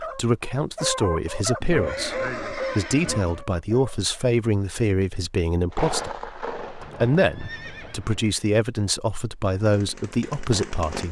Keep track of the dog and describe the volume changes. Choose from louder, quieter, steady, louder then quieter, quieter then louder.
quieter.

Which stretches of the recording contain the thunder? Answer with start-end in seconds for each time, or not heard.
5.7-8.1.